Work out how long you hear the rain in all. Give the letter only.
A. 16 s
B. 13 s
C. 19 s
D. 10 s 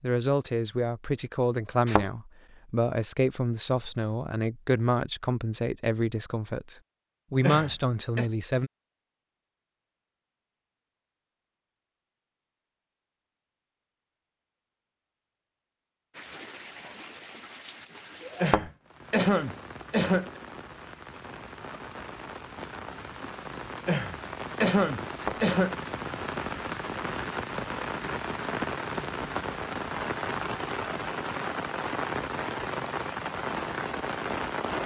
C.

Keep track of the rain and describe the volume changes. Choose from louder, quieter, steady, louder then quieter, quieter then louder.
louder.